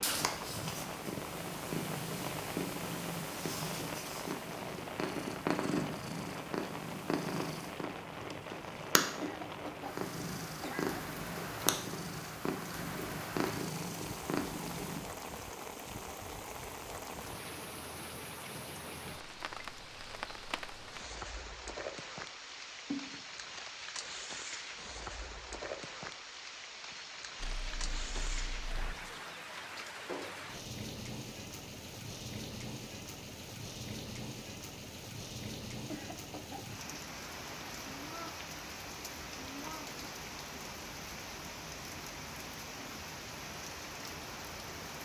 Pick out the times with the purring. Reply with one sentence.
You can hear the purring from 0.0 to 15.0 s and from 27.4 to 28.9 s.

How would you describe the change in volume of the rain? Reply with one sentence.
The loudness of the rain stays about the same.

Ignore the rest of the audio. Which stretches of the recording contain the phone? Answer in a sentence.
The phone can be heard from 22.4 to 23.2 s.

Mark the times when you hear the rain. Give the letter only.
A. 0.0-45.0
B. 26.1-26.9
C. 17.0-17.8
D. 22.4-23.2
A.